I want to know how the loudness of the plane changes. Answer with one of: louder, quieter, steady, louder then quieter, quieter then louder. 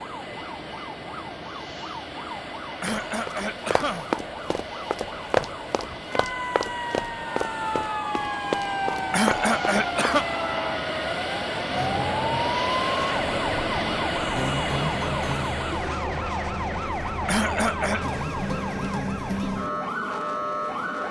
louder then quieter.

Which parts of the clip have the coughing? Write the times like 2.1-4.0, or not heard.
2.8-4.0, 9.1-10.2, 17.2-18.1.